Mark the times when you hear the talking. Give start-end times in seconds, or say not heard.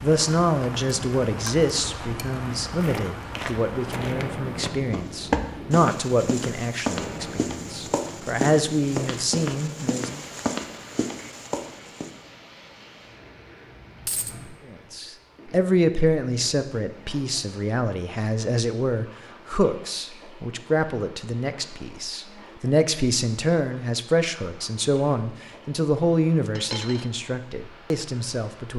0.0-10.2, 14.7-28.7.